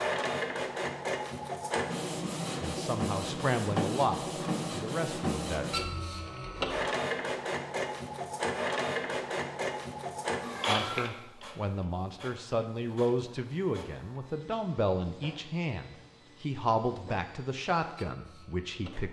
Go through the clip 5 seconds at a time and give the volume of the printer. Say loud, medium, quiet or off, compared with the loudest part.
loud, loud, medium, quiet.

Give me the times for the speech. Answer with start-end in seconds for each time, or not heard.
2.6-5.7, 10.7-19.0.